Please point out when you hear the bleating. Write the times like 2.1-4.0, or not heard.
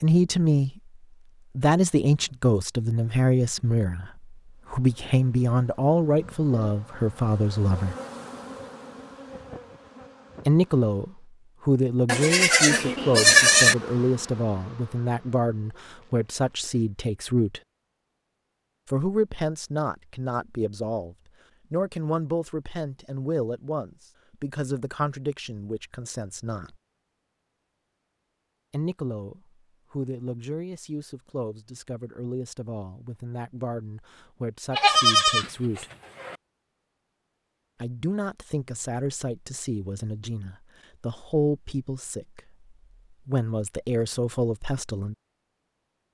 12.1-13.8, 34.7-36.4.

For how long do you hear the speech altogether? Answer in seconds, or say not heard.
37 s.